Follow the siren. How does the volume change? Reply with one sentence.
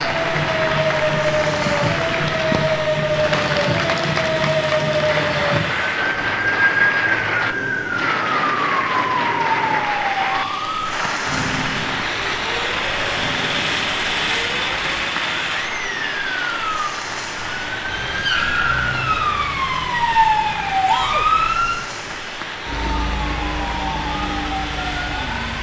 The loudness of the siren goes down, then up.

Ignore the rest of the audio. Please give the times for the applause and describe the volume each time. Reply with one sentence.
You can hear the applause from 0.0 to 25.4 s, getting quieter.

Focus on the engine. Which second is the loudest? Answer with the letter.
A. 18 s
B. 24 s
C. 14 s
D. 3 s
C.